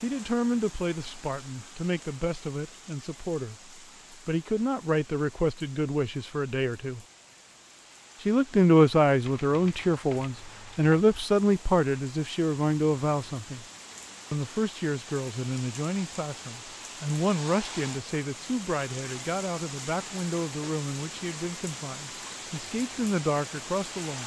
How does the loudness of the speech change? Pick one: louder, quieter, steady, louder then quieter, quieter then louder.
louder then quieter.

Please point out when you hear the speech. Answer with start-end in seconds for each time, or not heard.
0.0-7.0, 8.2-13.7, 14.3-24.2.